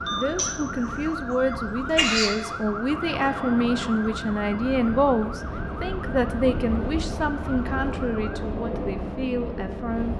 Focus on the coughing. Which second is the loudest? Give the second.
2 s.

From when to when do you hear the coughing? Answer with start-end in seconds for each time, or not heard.
0.3-2.4.